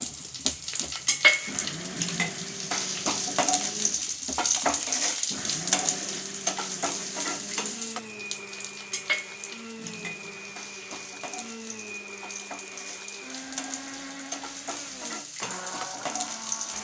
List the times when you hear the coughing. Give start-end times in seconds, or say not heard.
not heard.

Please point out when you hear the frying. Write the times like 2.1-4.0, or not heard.
0.0-16.7.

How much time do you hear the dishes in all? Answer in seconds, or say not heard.
not heard.